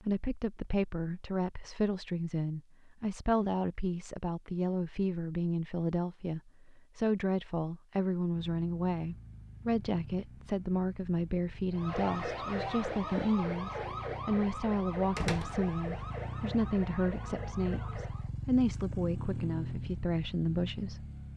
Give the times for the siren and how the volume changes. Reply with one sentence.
The siren can be heard from 11.7 to 18.3 s, getting quieter.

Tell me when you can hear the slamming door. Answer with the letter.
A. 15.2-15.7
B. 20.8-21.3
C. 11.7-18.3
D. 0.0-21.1
A.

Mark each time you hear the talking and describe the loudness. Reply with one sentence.
The talking can be heard from 0.0 to 21.1 s, at a steady volume.